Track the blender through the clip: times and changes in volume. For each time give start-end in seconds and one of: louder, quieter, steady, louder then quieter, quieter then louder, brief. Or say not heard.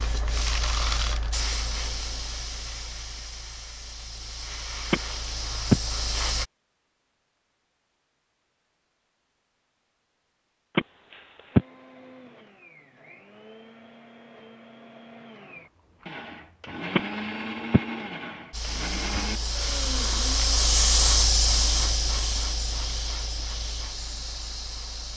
11.5-20.6 louder.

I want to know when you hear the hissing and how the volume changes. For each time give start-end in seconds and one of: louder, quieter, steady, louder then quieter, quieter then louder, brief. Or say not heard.
0.0-6.5 quieter then louder
18.5-25.1 louder then quieter.